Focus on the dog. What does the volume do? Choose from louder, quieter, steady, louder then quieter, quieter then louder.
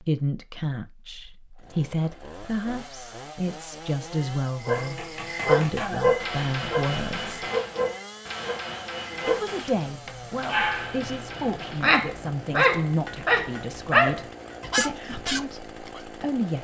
quieter then louder.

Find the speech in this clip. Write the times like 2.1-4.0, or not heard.
0.0-7.4, 9.2-16.5.